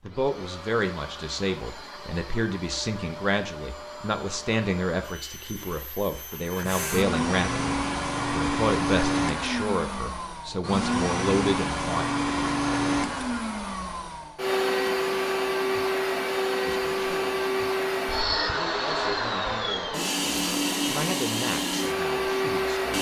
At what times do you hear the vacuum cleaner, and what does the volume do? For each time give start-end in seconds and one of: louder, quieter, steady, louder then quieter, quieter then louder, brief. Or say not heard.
0.0-22.9 louder.